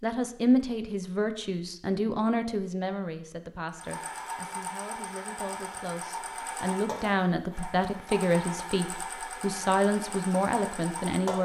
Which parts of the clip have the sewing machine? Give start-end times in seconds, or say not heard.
3.6-11.4.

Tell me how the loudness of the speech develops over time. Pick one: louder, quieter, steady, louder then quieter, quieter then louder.
quieter then louder.